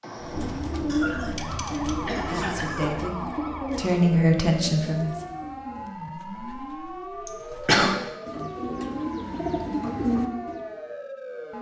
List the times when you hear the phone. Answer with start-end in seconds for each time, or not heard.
not heard.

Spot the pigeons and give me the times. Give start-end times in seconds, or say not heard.
0.2-10.6.